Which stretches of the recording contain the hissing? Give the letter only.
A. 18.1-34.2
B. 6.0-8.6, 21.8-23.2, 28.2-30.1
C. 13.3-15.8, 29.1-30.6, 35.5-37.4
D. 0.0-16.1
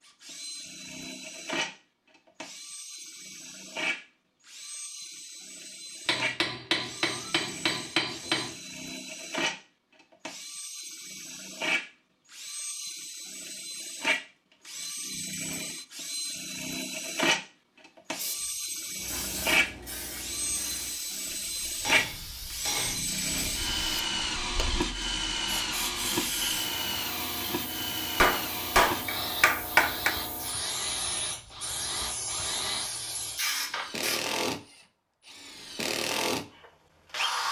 A.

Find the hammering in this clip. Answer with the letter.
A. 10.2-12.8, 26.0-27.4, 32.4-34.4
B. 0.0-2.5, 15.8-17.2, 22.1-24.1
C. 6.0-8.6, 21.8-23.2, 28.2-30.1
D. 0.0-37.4
C.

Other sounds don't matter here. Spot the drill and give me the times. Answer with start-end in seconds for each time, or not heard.
0.0-37.4.